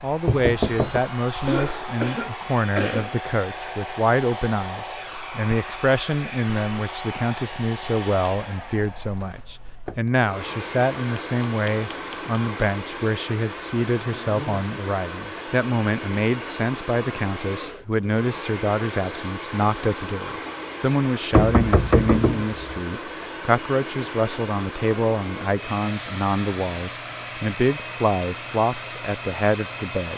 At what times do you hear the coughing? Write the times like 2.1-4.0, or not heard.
1.4-3.1.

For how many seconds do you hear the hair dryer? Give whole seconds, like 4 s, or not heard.
30 s.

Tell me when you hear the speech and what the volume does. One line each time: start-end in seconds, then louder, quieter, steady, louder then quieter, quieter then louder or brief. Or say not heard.
0.0-30.1 steady.